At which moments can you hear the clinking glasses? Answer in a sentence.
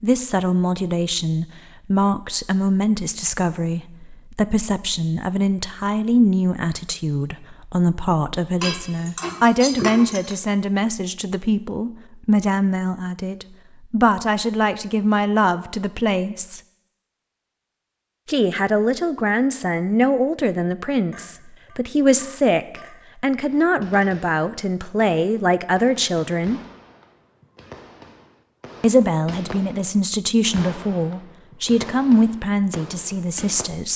The clinking glasses can be heard from 8.6 to 10.3 s and from 21.1 to 22.9 s.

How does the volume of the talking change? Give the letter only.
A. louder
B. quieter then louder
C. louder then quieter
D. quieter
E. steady
E.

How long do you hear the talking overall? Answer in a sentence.
The talking can be heard for 30 seconds in total.